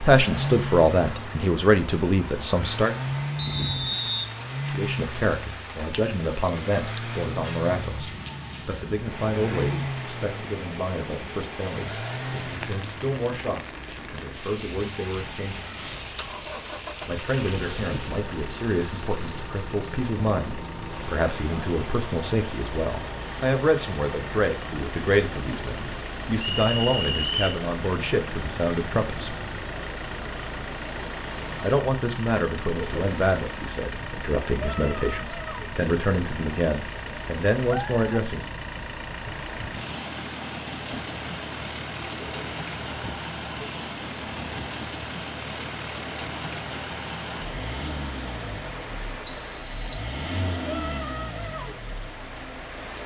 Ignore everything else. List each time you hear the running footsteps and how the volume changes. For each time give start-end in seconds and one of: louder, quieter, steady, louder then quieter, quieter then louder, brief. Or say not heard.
not heard.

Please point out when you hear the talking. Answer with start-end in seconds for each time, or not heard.
0.0-3.0, 4.7-15.7, 17.1-29.4, 31.6-38.5.